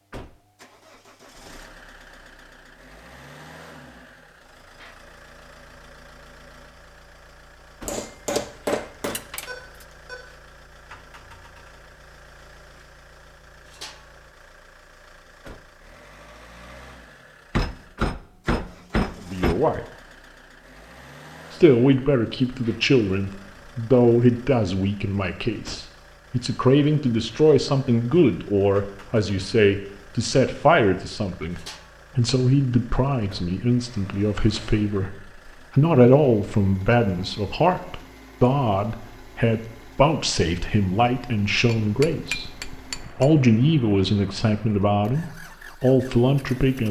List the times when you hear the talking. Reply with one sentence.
You can hear the talking from 19.2 to 19.8 s, from 21.5 to 42.5 s and from 43.1 to 46.8 s.